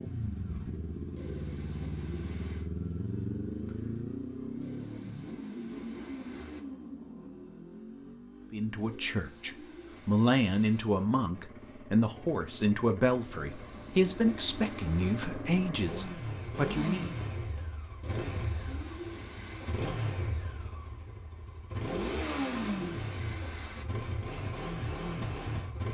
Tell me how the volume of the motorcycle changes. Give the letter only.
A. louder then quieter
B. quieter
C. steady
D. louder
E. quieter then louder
E.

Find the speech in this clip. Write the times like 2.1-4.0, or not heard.
8.5-17.1.